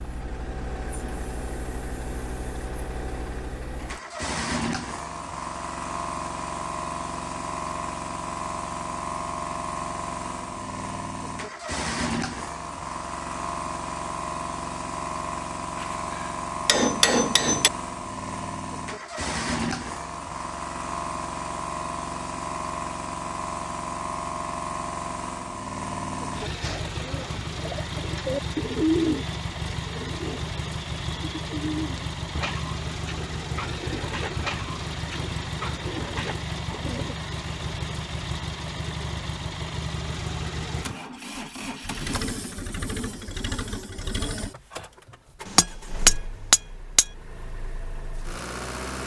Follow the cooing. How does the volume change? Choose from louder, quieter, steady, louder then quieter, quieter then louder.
louder then quieter.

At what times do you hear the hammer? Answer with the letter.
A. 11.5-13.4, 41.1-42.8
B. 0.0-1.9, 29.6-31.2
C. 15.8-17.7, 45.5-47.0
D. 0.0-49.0
C.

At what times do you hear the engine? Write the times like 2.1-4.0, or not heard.
0.0-49.0.